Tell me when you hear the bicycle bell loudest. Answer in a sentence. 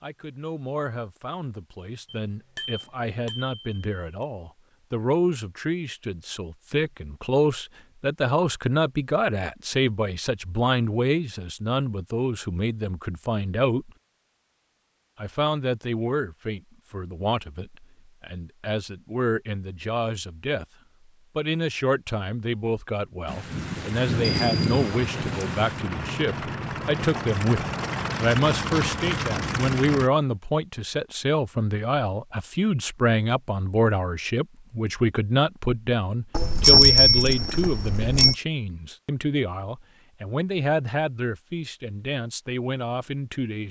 The volume of the bicycle bell peaks at 37 seconds.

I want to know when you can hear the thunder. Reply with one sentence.
You can hear the thunder from 23.2 to 25.9 s.